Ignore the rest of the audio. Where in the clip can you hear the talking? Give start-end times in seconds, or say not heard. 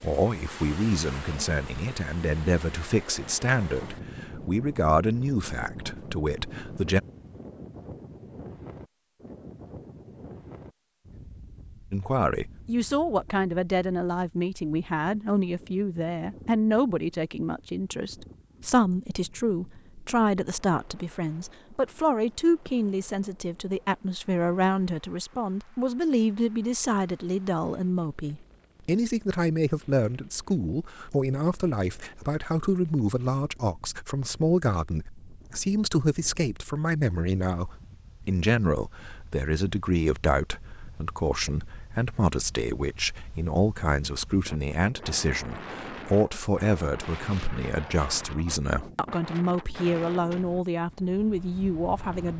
0.0-7.0, 11.9-52.3.